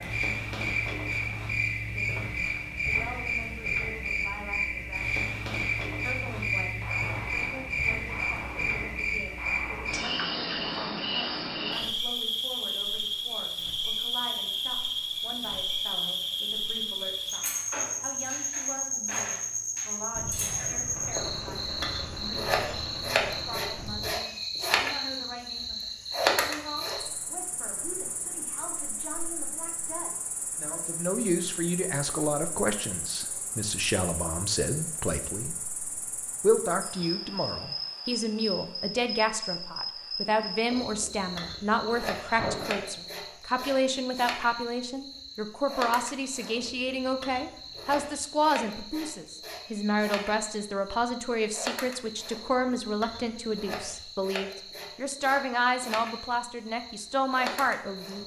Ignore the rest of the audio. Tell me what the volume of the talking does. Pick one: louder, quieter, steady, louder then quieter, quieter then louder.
louder.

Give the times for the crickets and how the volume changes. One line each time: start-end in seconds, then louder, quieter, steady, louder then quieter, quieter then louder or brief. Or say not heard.
0.0-58.2 quieter.